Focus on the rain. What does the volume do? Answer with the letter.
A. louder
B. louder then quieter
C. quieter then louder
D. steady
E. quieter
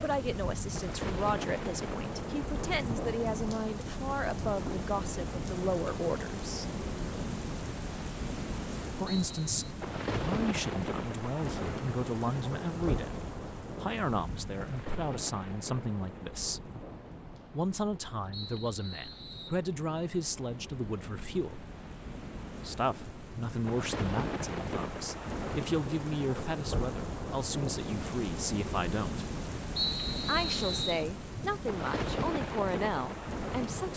C.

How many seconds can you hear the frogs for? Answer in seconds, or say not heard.
not heard.